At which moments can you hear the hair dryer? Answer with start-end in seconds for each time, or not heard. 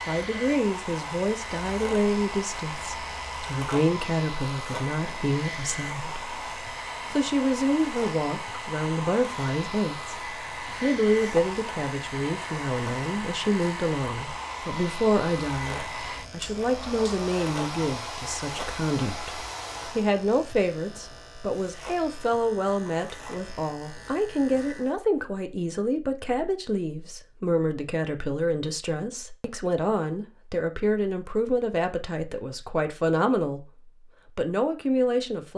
0.0-20.1.